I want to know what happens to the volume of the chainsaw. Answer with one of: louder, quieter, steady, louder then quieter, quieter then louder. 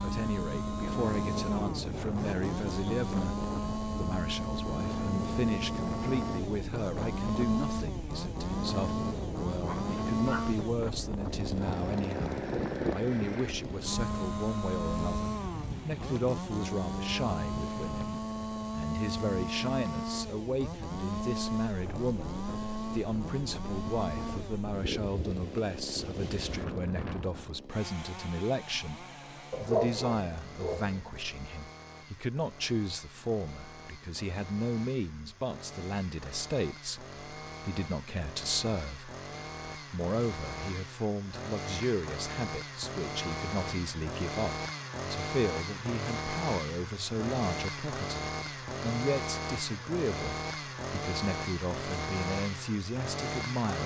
quieter then louder.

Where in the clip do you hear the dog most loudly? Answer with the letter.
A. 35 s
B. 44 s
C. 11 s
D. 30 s
D.